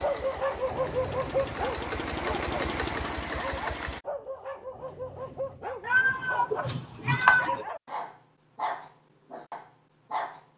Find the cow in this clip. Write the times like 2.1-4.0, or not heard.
not heard.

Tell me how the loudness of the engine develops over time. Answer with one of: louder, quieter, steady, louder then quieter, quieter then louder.
louder.